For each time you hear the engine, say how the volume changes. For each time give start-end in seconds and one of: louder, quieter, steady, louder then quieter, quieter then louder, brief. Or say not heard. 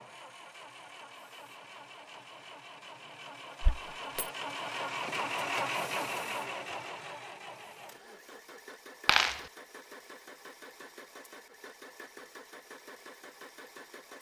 0.0-14.1 louder then quieter.